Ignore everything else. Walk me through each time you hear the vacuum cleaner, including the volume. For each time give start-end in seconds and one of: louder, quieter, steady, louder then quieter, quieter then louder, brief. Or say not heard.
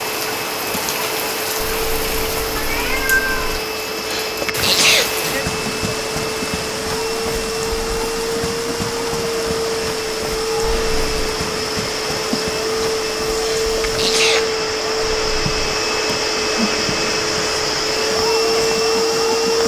0.0-19.6 louder.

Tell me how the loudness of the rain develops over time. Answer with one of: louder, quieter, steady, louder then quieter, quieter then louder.
quieter.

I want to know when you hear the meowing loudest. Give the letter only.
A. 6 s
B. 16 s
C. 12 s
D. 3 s
D.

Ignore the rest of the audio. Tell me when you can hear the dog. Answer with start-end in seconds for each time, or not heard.
not heard.